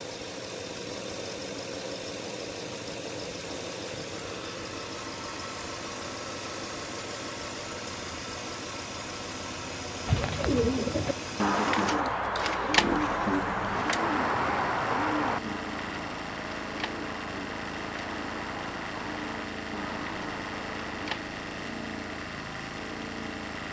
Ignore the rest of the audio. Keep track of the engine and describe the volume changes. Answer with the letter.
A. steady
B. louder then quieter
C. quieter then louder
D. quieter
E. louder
A.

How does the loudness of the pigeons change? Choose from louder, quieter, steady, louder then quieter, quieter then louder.
quieter.